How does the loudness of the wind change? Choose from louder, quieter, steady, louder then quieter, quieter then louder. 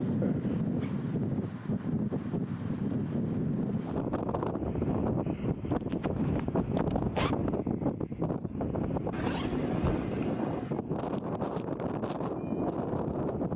steady.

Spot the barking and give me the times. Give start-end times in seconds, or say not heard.
not heard.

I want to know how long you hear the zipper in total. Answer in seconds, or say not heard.
4 s.